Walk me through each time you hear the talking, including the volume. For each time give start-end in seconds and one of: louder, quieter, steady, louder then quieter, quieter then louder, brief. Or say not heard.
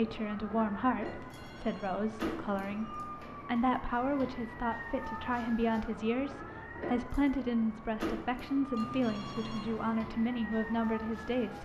0.0-11.5 steady.